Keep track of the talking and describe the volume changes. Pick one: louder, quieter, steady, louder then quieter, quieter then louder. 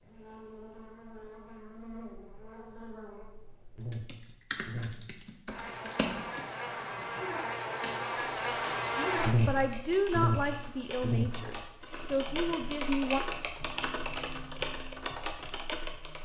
quieter then louder.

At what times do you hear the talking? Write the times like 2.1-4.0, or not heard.
8.9-13.2.